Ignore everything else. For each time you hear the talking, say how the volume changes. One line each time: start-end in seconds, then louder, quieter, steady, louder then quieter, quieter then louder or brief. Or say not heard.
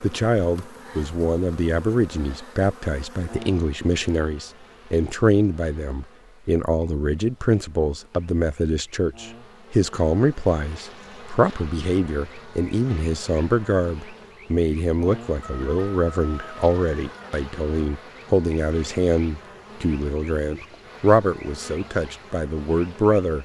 0.0-23.3 steady.